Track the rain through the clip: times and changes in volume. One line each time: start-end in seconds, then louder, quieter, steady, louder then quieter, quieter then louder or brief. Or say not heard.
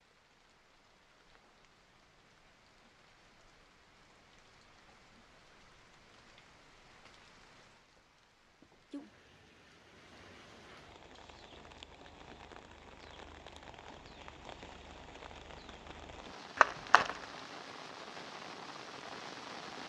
0.0-19.8 louder.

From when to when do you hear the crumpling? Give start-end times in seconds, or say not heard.
16.6-17.2.